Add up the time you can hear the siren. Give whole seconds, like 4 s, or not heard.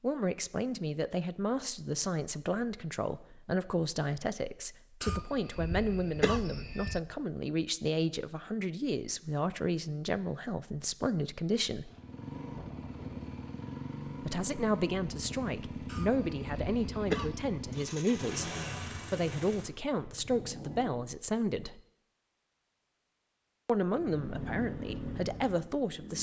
not heard.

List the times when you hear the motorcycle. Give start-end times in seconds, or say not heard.
11.8-21.1, 23.9-26.1.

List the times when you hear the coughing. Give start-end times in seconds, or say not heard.
5.0-7.0, 15.8-17.4.